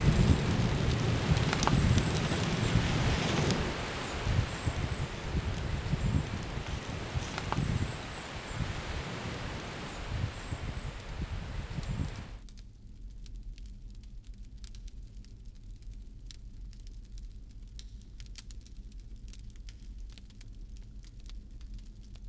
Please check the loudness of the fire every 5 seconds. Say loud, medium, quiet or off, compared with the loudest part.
loud, quiet, quiet, quiet, quiet.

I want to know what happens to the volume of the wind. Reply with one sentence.
The loudness of the wind goes down.